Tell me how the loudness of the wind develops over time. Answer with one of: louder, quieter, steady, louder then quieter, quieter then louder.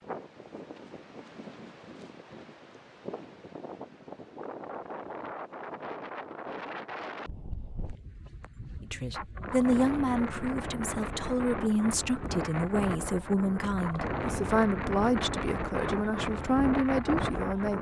louder.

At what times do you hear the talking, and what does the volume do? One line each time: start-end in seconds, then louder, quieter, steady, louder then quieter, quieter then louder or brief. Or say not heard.
8.8-17.7 steady.